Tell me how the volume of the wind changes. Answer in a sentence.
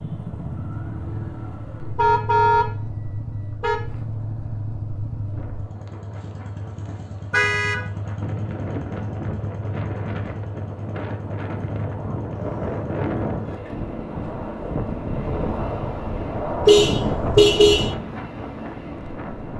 The loudness of the wind goes up.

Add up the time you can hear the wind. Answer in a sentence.
The wind can be heard for 14 seconds in total.